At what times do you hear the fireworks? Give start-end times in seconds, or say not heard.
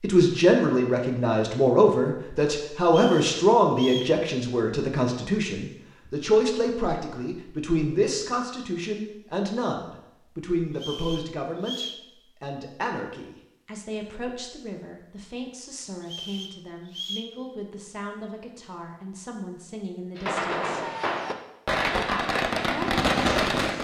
20.1-23.7.